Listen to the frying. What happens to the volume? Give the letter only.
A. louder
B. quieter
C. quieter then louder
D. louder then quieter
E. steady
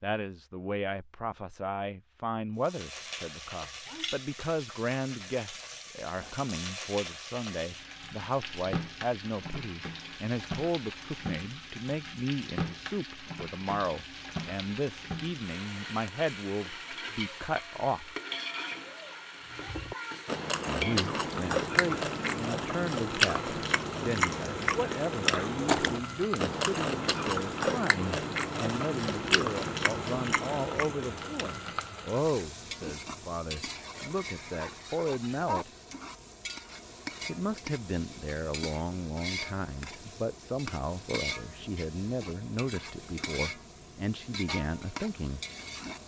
E.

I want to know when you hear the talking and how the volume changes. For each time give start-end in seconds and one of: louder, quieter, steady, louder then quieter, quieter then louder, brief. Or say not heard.
0.0-18.1 steady
20.6-35.7 steady
37.2-45.4 steady.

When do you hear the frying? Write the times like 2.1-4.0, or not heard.
2.6-46.0.